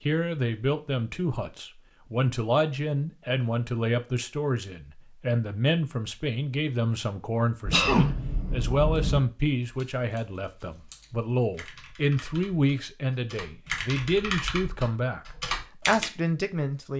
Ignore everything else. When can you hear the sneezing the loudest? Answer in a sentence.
The volume of the sneezing peaks at 8 seconds.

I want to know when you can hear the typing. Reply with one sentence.
The typing can be heard from 9.6 to 16.1 s.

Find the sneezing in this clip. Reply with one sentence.
The sneezing can be heard from 7.7 to 9.2 s.